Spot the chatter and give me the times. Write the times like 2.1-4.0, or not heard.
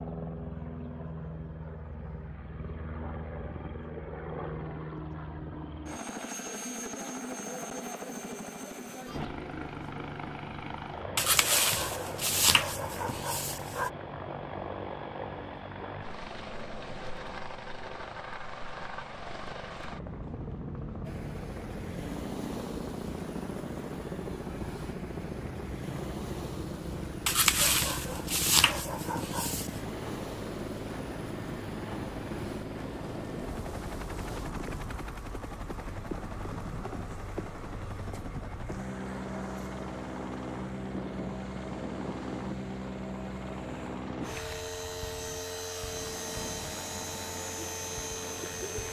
not heard.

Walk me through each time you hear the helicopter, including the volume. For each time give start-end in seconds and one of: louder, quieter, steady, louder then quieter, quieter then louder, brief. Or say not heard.
0.0-48.8 steady.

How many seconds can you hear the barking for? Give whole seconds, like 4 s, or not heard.
5 s.